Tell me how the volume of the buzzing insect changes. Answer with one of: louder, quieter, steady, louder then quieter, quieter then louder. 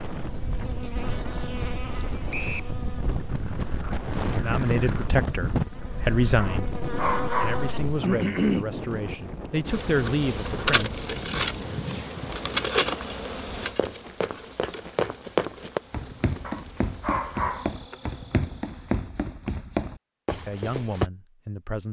louder then quieter.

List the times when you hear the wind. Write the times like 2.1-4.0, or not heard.
0.0-12.7.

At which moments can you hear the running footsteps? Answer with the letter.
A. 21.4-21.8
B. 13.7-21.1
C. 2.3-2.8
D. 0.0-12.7
B.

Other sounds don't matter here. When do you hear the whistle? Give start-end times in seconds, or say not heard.
2.3-2.8.